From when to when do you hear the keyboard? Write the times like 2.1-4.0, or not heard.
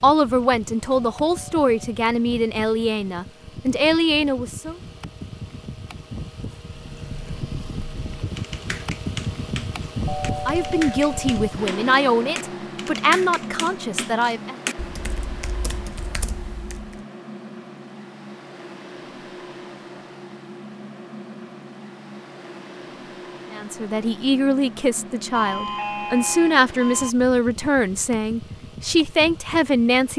6.8-17.0.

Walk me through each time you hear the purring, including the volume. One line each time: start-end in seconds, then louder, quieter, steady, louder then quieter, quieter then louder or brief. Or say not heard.
not heard.